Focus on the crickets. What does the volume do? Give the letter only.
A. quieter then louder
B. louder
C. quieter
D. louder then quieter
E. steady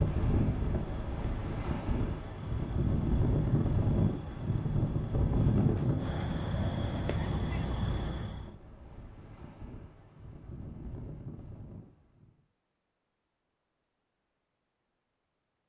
B.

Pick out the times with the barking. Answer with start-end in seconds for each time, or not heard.
not heard.